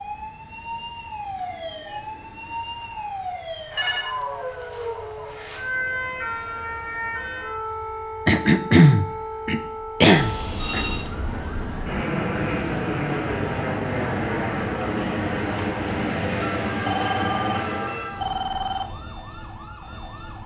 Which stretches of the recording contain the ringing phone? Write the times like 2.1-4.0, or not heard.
3.2-4.2, 10.1-11.1, 16.9-18.9.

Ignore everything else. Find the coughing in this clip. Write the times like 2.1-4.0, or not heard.
8.2-10.8.